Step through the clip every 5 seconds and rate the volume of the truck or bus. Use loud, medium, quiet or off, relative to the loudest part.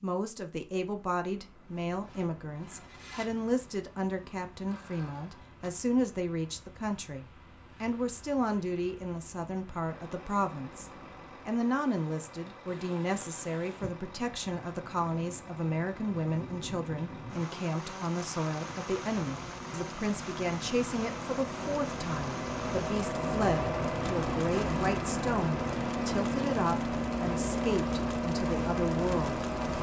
quiet, quiet, quiet, quiet, loud, loud.